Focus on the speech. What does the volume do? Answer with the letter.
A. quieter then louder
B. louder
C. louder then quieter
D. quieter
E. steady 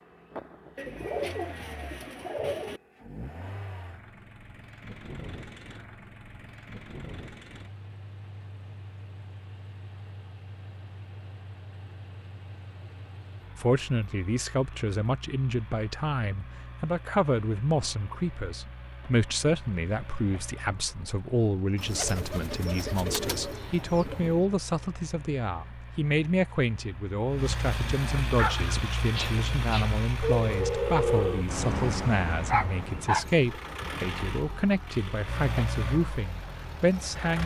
E.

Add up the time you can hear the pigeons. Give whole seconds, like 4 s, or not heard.
5 s.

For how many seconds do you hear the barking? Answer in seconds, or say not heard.
5 s.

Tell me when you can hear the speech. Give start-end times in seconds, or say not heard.
13.6-37.4.